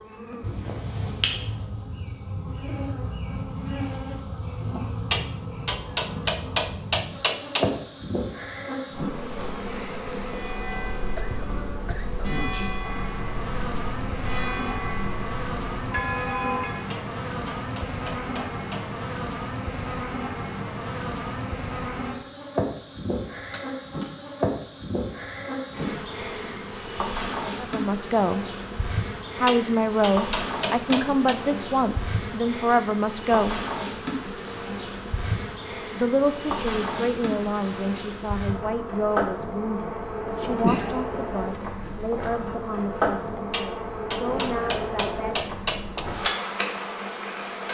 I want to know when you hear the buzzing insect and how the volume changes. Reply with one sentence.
You can hear the buzzing insect from 0.0 to 47.6 s, at a steady volume.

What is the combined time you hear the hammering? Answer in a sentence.
The hammering can be heard for 9 seconds in total.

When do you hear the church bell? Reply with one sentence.
You can hear the church bell from 10.2 to 16.9 s.